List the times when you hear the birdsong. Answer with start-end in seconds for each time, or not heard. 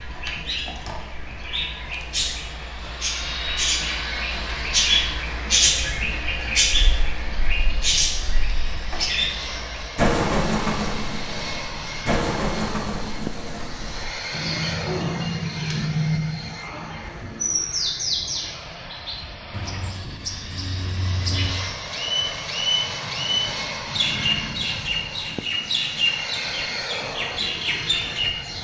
0.0-28.5.